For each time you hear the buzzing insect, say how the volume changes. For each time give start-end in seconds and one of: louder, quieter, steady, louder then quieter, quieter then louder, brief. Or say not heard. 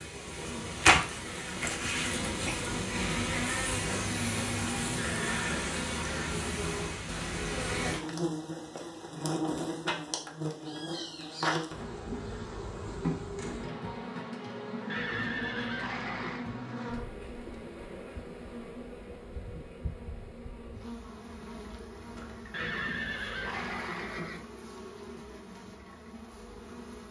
0.0-27.0 quieter.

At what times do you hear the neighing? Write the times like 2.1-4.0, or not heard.
5.0-5.4, 14.8-16.5, 22.5-24.4.